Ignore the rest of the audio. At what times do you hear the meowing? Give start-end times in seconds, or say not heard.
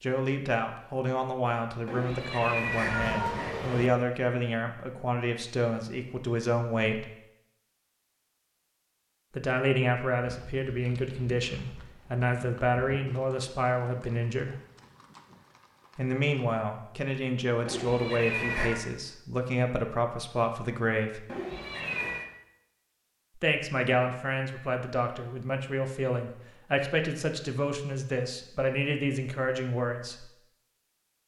1.9-3.9, 17.6-18.8, 21.2-22.2.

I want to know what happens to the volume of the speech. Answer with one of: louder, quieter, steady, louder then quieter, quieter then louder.
steady.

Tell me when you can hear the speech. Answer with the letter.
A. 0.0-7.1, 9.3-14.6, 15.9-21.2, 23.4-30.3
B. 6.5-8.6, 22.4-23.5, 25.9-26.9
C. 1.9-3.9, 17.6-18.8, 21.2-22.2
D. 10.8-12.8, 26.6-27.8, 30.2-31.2
A.